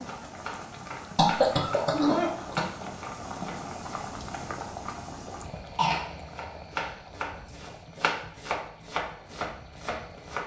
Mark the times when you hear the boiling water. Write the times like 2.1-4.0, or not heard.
0.0-10.4.